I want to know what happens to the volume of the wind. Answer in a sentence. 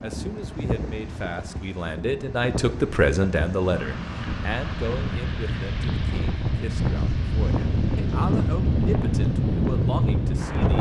The volume of the wind goes up.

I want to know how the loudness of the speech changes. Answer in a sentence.
The loudness of the speech goes up, then down.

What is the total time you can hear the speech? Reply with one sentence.
The speech can be heard for 11 seconds in total.